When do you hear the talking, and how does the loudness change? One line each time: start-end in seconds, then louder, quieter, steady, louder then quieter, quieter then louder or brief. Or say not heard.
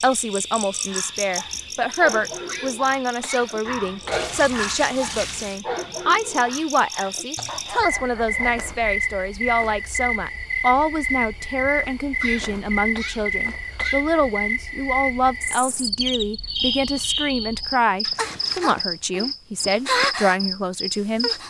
0.0-21.3 steady.